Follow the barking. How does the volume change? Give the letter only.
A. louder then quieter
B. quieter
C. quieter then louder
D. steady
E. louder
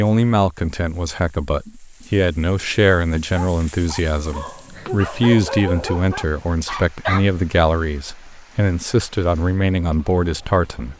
E.